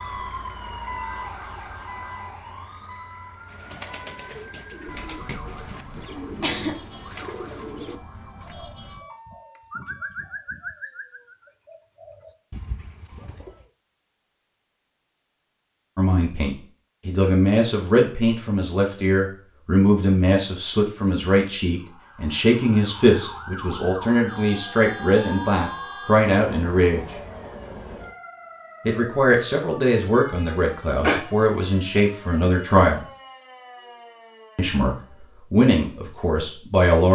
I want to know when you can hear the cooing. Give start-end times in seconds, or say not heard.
3.5-13.7.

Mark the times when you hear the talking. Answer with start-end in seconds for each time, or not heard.
15.9-27.1, 28.9-33.0, 34.5-37.0.